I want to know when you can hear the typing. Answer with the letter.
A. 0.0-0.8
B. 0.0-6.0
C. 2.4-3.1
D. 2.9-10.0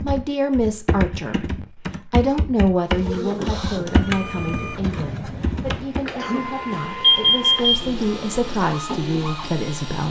B.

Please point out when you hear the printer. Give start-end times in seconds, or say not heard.
2.9-10.0.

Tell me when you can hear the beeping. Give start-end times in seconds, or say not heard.
7.0-7.8.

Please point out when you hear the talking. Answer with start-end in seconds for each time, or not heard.
0.0-10.0.